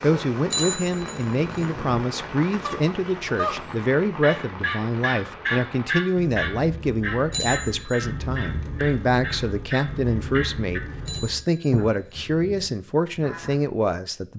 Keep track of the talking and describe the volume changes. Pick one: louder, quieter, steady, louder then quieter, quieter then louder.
steady.